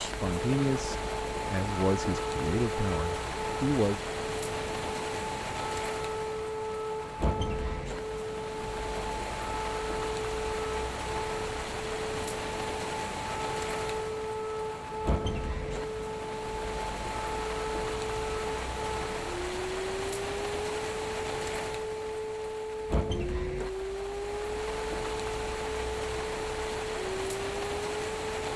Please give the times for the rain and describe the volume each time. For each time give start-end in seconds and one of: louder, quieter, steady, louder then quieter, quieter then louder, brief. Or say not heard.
0.0-28.5 steady.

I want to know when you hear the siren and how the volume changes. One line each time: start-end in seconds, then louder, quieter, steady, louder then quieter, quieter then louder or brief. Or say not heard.
0.2-28.5 steady.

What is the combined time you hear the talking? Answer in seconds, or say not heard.
4 s.